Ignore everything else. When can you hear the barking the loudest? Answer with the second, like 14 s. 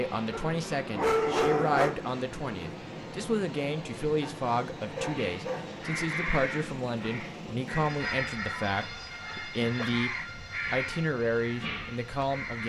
1 s.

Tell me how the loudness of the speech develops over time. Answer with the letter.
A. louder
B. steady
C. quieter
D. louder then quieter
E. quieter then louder
B.